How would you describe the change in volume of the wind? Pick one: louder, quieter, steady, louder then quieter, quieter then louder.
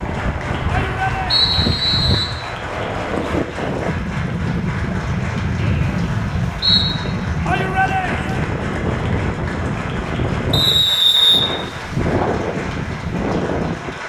steady.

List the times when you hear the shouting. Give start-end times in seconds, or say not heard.
0.7-1.4, 7.5-8.4.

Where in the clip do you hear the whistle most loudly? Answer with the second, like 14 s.
11 s.